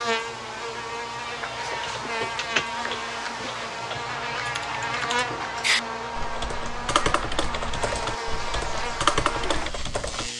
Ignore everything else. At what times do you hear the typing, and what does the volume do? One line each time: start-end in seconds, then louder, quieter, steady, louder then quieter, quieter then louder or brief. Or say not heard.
1.7-10.3 quieter then louder.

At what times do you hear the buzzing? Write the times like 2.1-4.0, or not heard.
0.0-10.3.